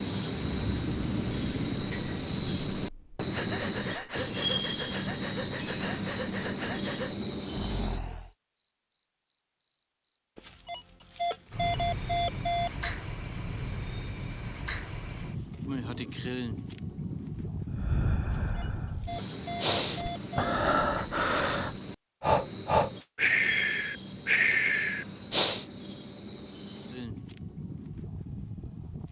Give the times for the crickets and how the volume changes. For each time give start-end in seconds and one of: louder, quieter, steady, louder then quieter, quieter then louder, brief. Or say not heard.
0.0-29.0 quieter.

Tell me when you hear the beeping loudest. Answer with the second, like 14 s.
12 s.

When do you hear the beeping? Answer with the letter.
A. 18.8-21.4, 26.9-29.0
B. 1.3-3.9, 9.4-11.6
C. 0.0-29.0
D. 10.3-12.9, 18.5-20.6
D.